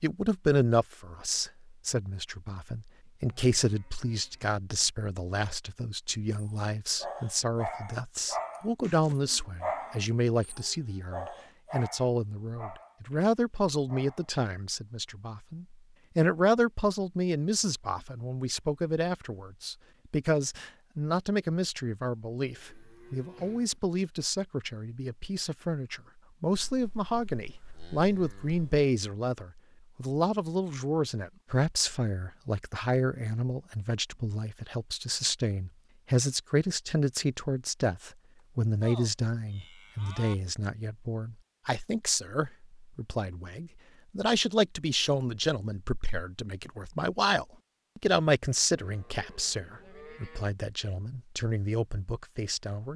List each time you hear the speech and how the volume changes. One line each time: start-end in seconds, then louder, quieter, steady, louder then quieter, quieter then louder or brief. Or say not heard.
0.0-52.9 steady.